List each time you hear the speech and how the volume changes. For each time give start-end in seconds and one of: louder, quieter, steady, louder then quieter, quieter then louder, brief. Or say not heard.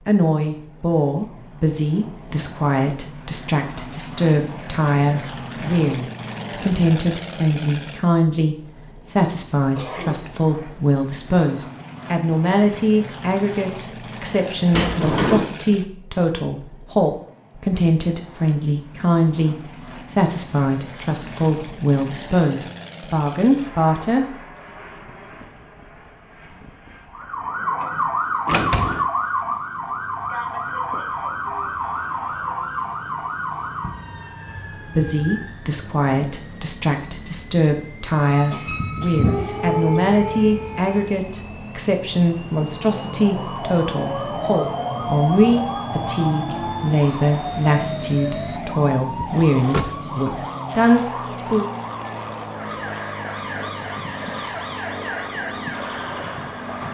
0.1-24.4 steady
35.0-51.6 steady.